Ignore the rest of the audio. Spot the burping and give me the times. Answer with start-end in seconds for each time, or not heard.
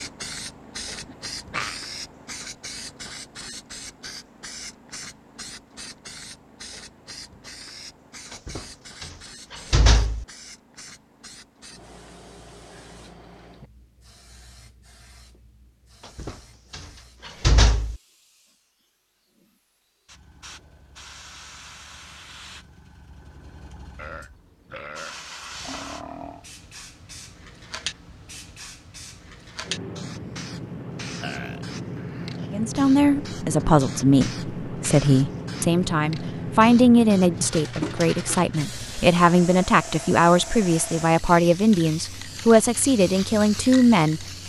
0.8-1.8, 23.9-26.4, 31.2-32.4.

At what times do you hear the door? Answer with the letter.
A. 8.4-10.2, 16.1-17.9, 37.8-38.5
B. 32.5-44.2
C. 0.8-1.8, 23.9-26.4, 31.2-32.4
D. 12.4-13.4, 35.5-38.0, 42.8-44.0
A.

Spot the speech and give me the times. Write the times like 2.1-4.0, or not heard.
32.5-44.2.